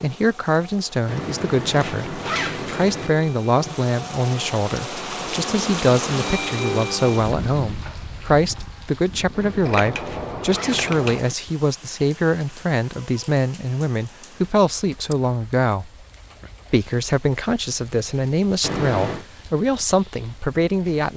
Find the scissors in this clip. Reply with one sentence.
The scissors can be heard from 9.7 to 11.2 s.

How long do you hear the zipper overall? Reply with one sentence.
The zipper can be heard for 5 seconds in total.